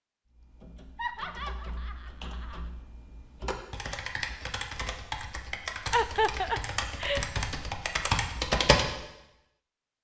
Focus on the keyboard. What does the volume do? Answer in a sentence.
The volume of the keyboard goes up.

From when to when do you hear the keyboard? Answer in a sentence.
The keyboard can be heard from 0.3 to 8.9 s.